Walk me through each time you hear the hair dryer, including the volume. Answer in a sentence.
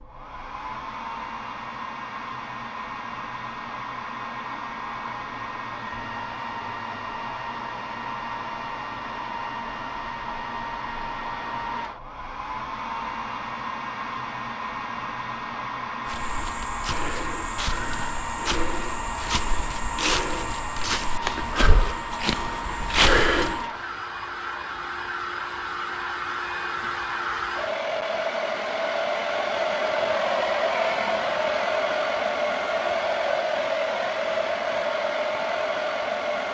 The hair dryer can be heard from 0.0 to 36.4 s, getting louder.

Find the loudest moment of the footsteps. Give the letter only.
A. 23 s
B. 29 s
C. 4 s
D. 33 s
A.